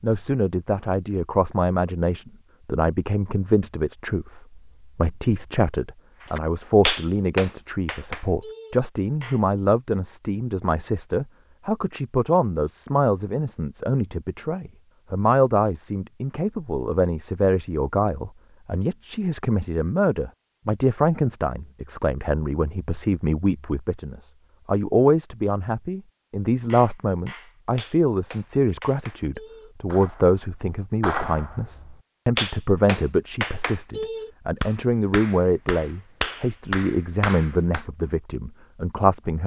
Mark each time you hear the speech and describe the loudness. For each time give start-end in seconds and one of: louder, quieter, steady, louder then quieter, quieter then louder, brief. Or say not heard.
0.0-39.4 steady.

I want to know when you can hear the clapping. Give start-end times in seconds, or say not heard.
6.2-9.4, 26.6-37.9.